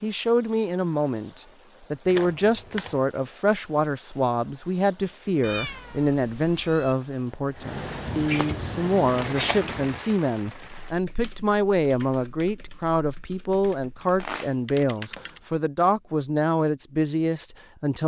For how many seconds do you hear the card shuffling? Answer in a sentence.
The card shuffling can be heard for 4 seconds in total.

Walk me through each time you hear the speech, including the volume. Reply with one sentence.
You can hear the speech from 0.0 to 18.0 s, at a steady volume.